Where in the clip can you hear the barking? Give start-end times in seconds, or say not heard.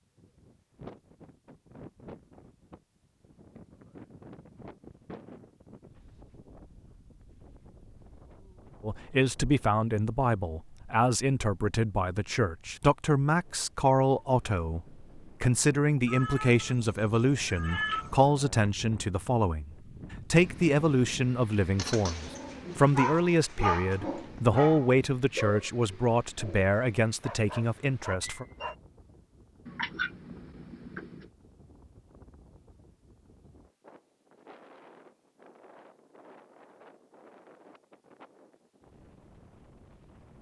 21.8-28.8.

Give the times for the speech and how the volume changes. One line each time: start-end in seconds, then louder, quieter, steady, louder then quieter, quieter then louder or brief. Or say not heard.
8.8-28.4 steady.